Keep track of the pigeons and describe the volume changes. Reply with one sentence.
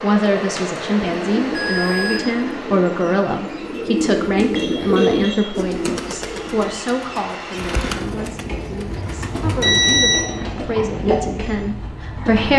The volume of the pigeons goes up, then down.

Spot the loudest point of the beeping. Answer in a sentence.
The volume of the beeping peaks at 10 seconds.